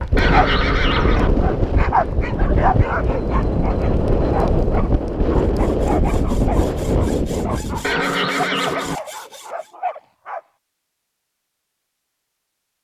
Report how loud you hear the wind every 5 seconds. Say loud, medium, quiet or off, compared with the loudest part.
loud, loud, off.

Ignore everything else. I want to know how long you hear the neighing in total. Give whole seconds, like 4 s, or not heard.
2 s.